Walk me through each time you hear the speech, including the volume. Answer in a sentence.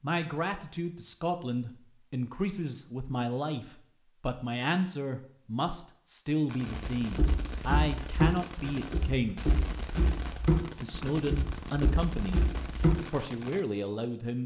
You can hear the speech from 0.0 to 9.4 s, at a steady volume; briefly from 10.8 to 12.4 s; and briefly from 13.1 to 14.4 s.